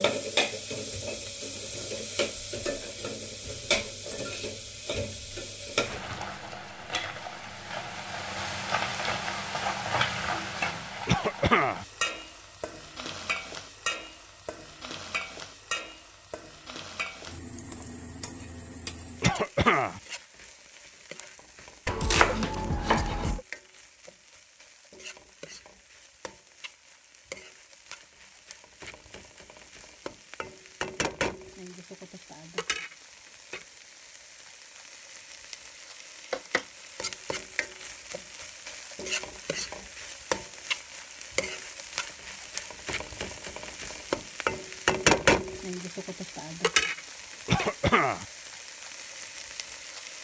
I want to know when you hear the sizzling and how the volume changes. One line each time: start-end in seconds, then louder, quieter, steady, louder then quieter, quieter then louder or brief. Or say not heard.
0.0-50.1 quieter then louder.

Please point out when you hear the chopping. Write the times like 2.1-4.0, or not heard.
21.9-23.4.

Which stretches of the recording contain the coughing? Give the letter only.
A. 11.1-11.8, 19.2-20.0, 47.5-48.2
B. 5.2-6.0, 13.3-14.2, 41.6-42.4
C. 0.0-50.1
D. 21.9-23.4
A.